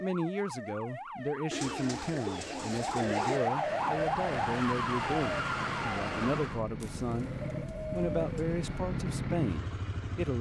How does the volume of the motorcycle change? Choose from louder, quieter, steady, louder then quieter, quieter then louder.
louder.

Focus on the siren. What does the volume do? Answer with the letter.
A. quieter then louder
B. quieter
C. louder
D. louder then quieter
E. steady
C.